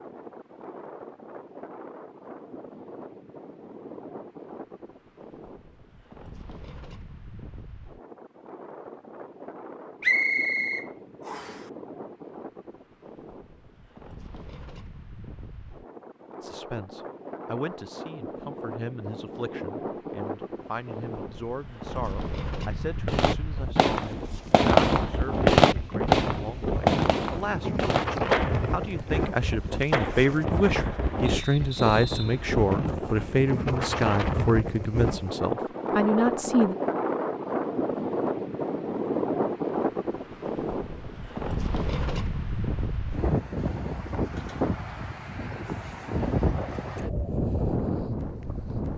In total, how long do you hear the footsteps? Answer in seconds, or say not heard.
not heard.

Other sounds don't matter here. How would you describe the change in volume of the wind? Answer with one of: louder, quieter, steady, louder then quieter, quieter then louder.
louder.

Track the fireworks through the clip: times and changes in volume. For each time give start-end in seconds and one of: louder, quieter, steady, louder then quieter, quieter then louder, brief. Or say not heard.
23.1-31.4 quieter.